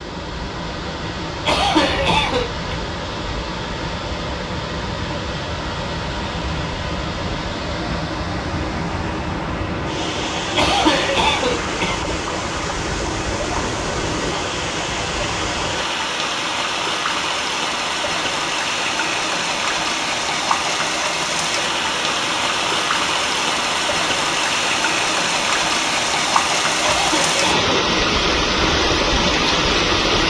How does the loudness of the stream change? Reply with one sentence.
The volume of the stream goes up.